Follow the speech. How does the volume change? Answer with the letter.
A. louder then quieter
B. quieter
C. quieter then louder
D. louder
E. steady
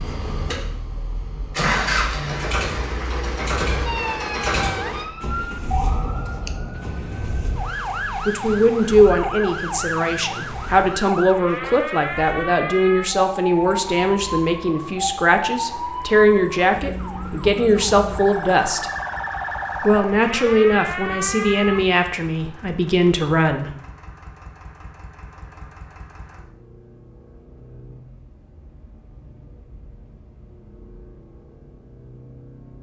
E.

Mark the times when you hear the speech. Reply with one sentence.
The speech can be heard from 8.2 to 18.9 s and from 19.8 to 23.7 s.